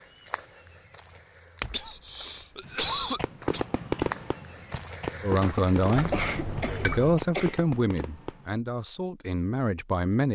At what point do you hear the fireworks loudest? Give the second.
4 s.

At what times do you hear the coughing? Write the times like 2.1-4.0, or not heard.
1.7-3.6, 6.1-7.5.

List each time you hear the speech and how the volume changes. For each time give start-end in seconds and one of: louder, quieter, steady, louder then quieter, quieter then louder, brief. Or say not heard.
5.2-10.3 quieter.